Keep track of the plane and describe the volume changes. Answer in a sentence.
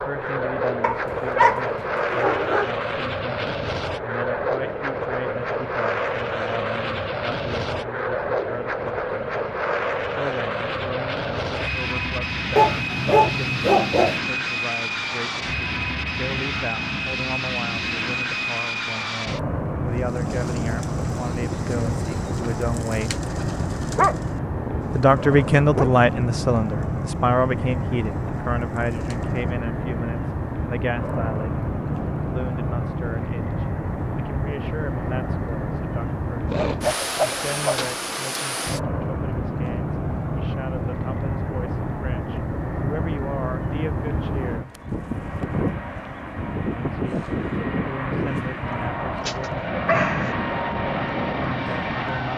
The loudness of the plane stays about the same.